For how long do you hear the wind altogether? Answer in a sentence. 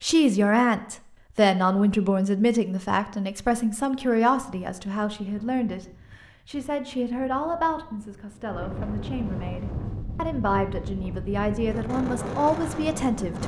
You can hear the wind for 9 seconds altogether.